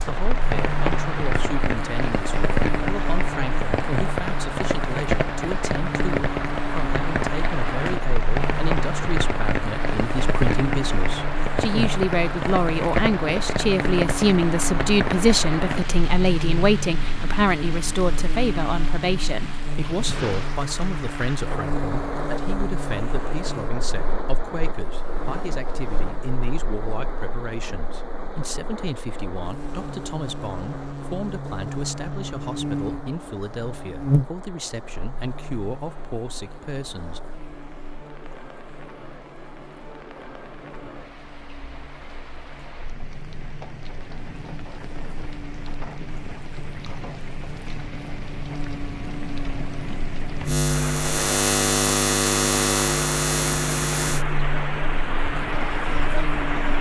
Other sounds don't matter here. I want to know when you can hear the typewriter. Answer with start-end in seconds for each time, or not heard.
not heard.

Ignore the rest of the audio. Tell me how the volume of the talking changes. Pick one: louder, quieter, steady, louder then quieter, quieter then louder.
louder then quieter.